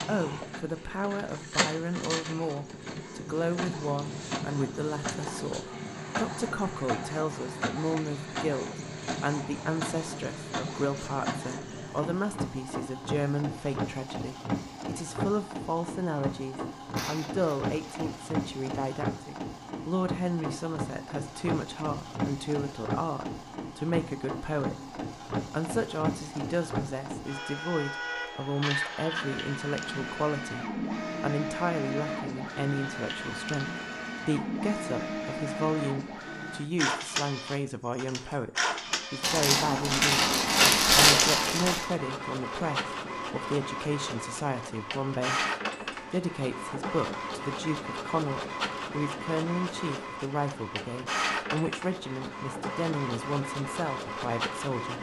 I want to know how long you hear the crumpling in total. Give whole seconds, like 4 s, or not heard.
4 s.